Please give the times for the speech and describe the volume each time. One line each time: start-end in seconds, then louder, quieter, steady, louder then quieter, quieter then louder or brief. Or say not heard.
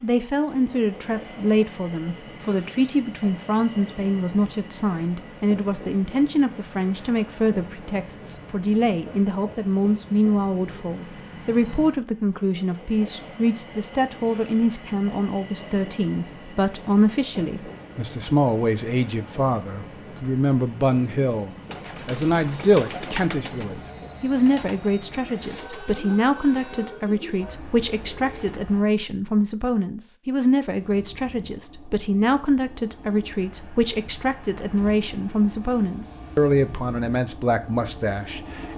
0.0-38.7 steady.